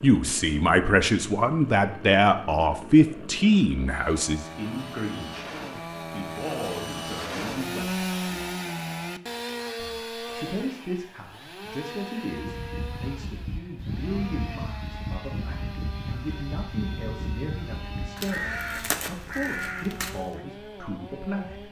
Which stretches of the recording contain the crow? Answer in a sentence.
The crow can be heard from 12.3 to 20.4 s.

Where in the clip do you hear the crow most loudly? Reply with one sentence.
The loudest moment of the crow is at 19 seconds.